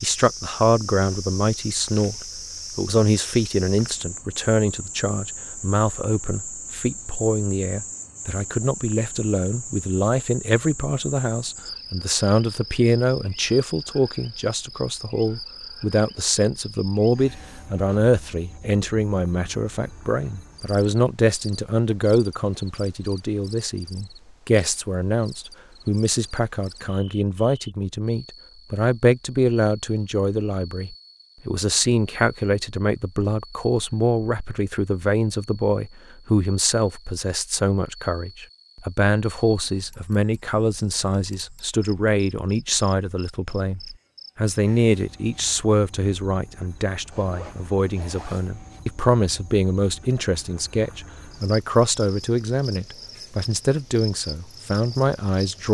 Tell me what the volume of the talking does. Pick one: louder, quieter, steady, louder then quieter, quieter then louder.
steady.